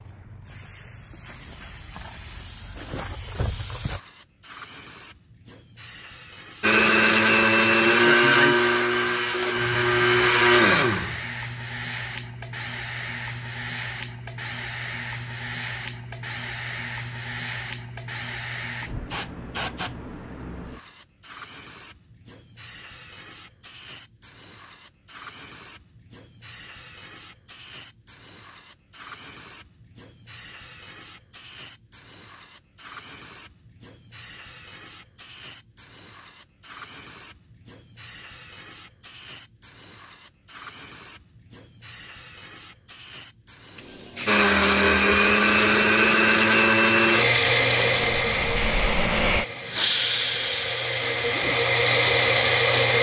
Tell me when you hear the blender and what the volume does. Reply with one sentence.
You can hear the blender from 6.6 to 11.2 s, getting quieter then louder; and from 44.2 to 52.9 s, getting quieter then louder.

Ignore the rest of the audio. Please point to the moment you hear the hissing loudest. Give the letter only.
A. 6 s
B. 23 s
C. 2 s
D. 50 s
D.